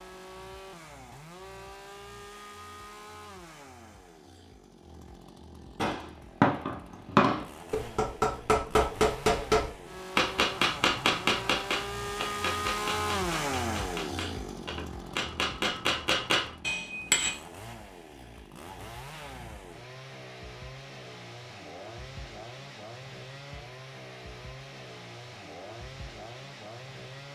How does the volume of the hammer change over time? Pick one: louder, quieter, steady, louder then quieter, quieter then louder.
quieter then louder.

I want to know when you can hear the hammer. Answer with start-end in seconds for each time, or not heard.
5.8-17.3.